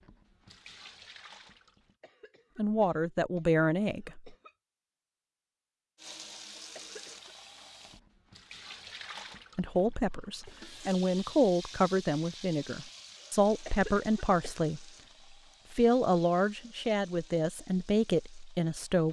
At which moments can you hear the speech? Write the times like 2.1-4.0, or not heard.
2.5-4.3, 9.6-14.8, 15.7-19.0.